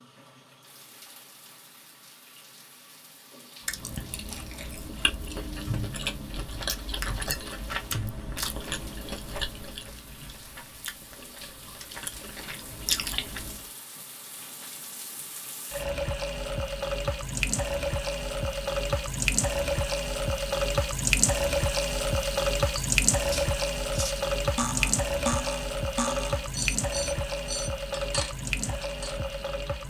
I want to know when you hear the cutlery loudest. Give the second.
25 s.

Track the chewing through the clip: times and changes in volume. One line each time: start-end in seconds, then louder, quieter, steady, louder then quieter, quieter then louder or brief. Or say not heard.
3.6-13.7 quieter then louder.